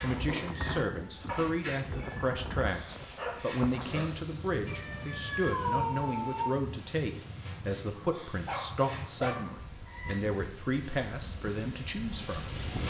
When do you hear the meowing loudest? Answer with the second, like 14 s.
6 s.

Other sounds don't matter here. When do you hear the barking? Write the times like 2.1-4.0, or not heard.
3.1-4.2, 8.0-9.6.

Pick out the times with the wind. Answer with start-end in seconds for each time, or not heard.
0.0-12.8.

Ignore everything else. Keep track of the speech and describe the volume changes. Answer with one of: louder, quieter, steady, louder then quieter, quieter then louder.
steady.